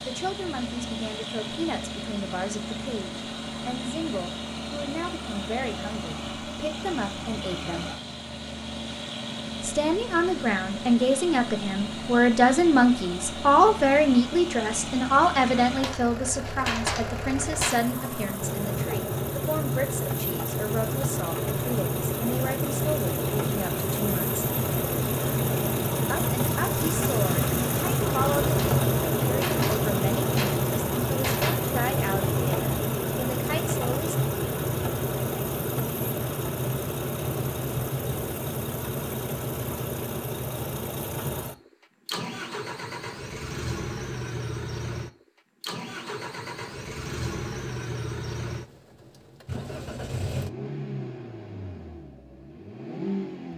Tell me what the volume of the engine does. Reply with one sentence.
The loudness of the engine goes up, then down.